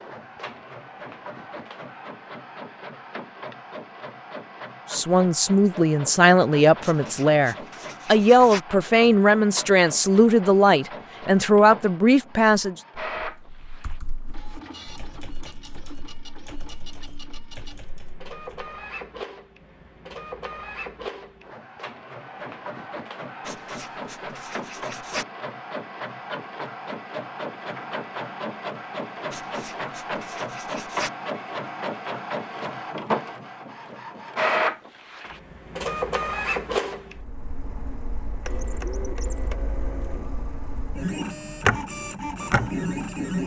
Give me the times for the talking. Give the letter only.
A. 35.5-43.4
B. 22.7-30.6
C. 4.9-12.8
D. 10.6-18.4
C.